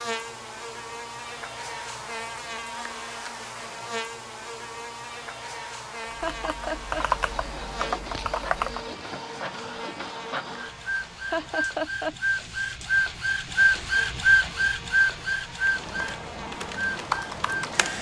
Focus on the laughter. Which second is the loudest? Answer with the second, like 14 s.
12 s.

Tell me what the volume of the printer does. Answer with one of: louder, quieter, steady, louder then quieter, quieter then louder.
louder then quieter.